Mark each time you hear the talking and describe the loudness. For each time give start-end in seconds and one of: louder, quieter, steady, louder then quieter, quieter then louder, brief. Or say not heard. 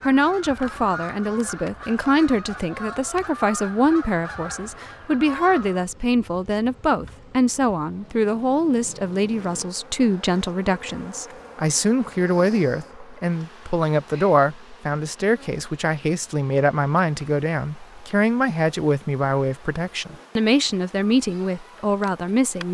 0.1-22.7 steady.